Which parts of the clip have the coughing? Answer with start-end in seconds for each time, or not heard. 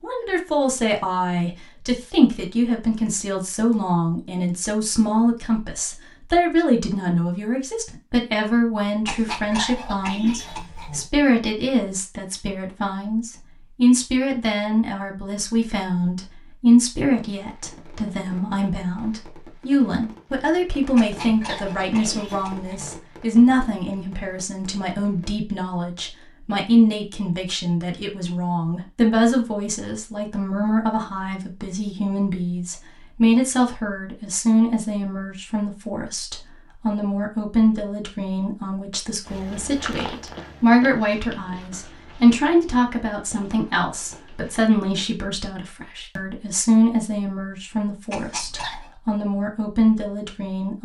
9.1-11.1, 20.9-22.9, 48.1-49.0.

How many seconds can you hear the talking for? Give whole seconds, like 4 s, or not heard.
51 s.